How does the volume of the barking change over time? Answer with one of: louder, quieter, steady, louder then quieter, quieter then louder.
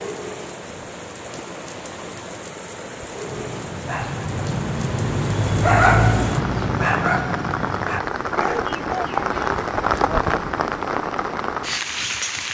louder then quieter.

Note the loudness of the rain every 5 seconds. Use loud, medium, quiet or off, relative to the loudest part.
medium, loud, loud.